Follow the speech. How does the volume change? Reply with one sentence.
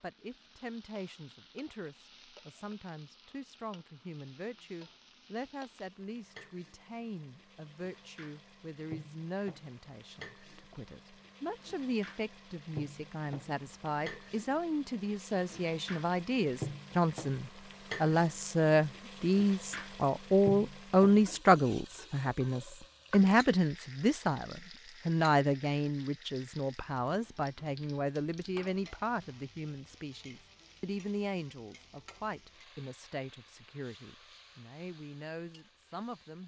The volume of the speech goes up, then down.